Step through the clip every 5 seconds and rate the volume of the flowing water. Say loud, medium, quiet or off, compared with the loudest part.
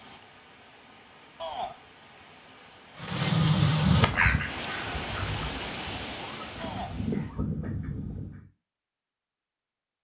medium, loud.